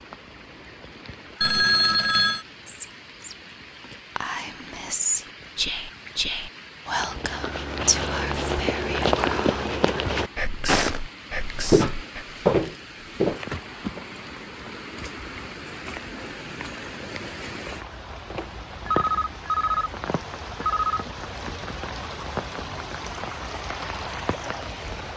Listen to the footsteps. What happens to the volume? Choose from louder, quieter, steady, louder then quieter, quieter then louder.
louder.